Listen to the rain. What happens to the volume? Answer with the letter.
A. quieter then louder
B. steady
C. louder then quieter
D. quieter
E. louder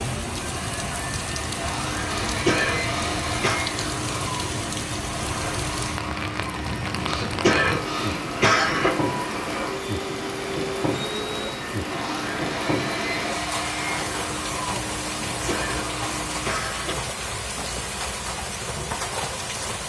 B.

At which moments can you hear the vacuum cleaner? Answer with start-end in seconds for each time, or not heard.
0.2-16.6.